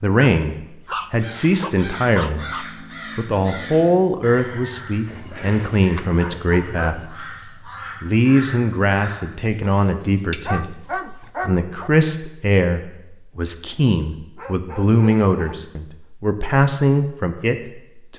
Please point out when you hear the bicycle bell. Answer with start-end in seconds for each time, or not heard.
10.3-10.9.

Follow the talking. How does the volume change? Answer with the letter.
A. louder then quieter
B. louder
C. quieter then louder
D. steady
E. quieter
D.